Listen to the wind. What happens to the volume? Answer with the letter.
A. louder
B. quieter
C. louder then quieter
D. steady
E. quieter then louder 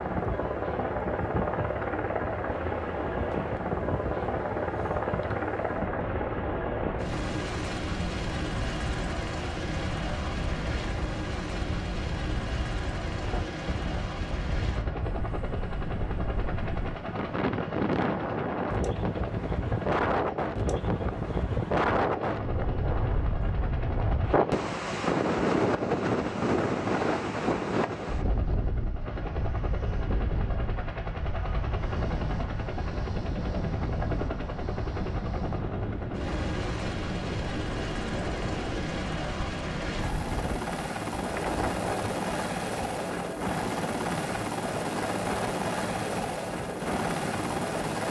C.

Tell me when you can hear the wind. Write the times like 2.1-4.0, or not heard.
0.0-48.0.